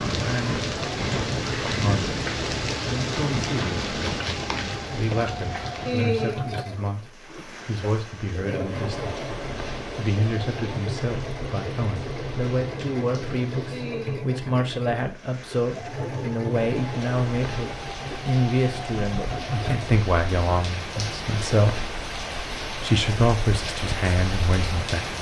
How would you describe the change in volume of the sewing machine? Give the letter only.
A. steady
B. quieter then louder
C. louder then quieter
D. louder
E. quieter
A.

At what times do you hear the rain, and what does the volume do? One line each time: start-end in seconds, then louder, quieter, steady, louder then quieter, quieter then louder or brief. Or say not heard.
0.0-25.1 quieter then louder.